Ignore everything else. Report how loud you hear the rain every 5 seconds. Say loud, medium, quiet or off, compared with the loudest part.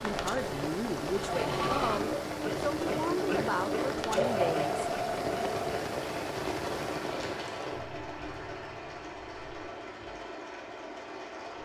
loud, loud, quiet.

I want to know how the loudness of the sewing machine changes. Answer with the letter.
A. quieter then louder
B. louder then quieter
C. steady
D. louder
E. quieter
E.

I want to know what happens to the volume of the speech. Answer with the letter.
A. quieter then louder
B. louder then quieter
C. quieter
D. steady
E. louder
D.